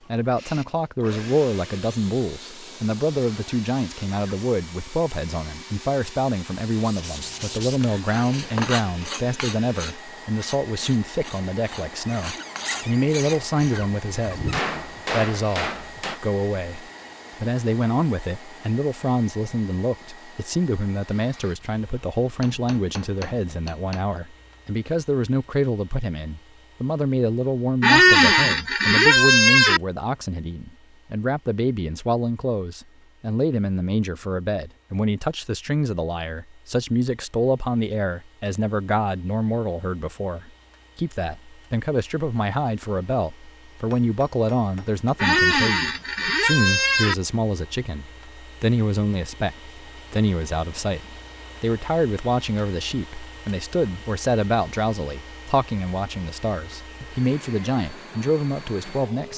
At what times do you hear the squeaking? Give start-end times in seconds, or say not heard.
12.1-14.7, 27.8-29.8, 45.1-47.1.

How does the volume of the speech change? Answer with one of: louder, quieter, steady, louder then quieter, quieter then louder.
steady.